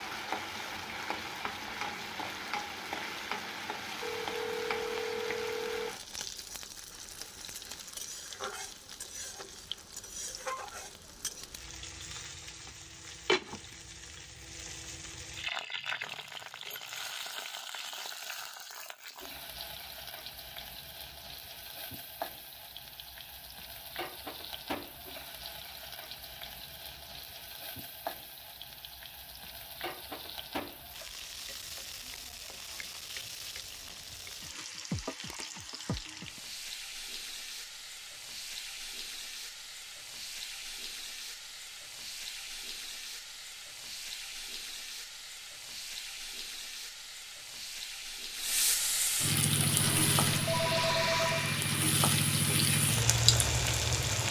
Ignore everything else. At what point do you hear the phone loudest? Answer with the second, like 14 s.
51 s.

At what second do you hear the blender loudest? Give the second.
51 s.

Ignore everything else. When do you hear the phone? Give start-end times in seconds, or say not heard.
4.0-6.0, 49.9-51.5.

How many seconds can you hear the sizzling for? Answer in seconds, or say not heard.
54 s.